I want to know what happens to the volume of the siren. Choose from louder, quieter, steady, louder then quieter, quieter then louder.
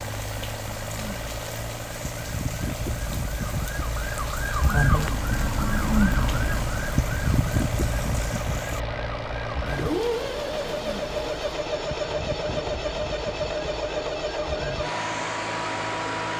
louder then quieter.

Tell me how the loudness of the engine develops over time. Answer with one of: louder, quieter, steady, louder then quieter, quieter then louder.
louder.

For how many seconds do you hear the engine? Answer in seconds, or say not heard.
16 s.